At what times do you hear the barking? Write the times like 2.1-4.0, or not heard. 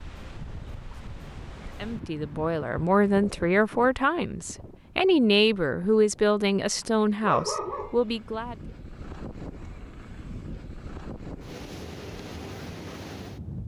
6.8-8.1.